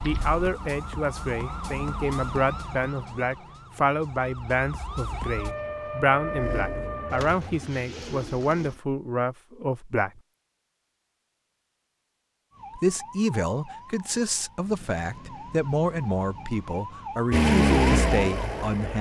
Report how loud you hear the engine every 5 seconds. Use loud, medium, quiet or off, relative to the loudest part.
off, quiet, off, loud.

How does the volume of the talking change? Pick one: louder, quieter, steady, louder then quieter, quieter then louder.
steady.